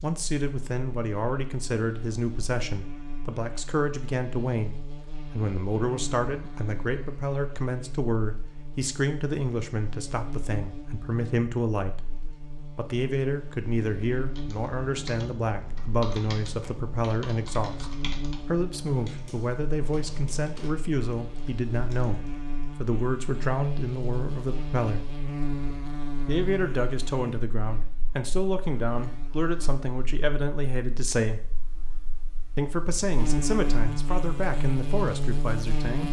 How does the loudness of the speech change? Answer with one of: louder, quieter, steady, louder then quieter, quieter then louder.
steady.